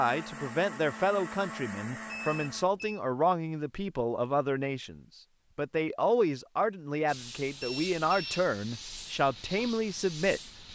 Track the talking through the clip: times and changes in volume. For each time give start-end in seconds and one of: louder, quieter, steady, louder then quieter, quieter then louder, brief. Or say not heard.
0.0-10.7 steady.